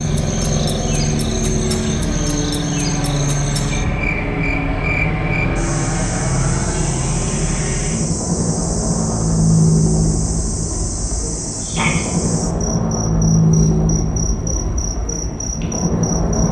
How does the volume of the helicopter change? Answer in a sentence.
The volume of the helicopter stays about the same.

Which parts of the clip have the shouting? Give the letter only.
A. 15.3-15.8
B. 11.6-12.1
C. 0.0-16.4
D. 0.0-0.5
B.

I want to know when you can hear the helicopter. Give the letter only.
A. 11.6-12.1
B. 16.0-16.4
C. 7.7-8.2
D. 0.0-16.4
D.